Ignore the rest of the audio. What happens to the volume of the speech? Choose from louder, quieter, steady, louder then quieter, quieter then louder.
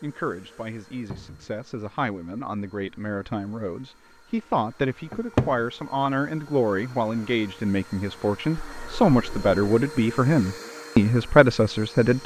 louder.